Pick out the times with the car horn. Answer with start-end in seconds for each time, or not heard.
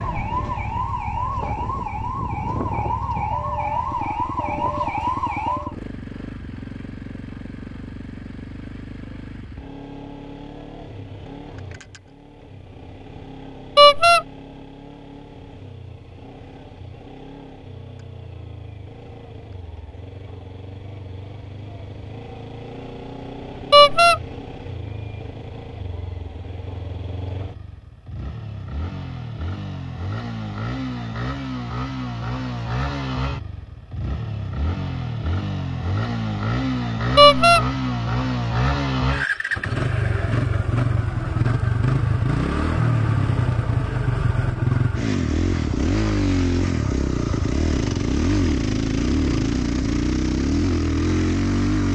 13.8-14.2, 23.7-24.2, 37.1-37.6.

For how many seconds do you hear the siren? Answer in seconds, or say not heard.
6 s.